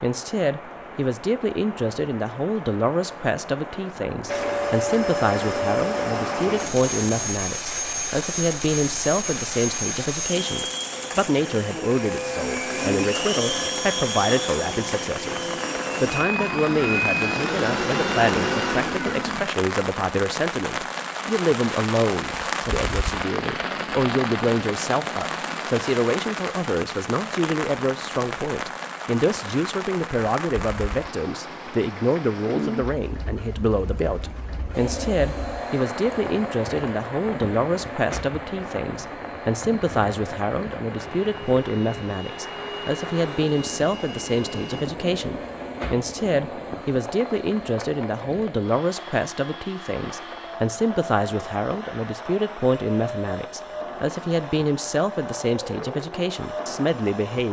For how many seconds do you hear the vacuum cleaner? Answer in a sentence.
You can hear the vacuum cleaner for 38 seconds altogether.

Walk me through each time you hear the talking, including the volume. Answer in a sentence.
You can hear the talking from 0.0 to 57.4 s, at a steady volume.